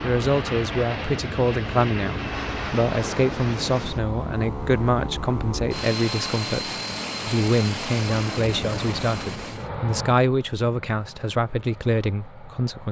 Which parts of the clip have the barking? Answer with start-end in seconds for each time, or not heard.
not heard.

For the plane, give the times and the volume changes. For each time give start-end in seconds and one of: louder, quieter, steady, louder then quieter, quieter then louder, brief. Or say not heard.
0.0-12.8 quieter.